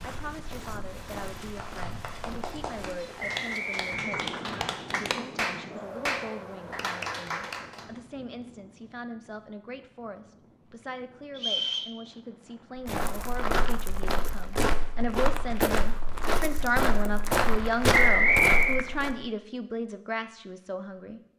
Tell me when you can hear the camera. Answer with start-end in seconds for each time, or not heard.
not heard.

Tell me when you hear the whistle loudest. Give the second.
18 s.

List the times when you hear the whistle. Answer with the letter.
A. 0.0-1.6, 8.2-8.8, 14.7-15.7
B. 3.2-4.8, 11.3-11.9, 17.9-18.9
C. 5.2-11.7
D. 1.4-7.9
B.